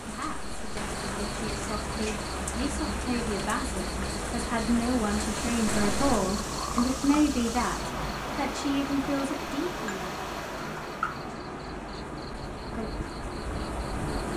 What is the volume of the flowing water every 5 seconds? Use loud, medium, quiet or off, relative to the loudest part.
off, loud, loud.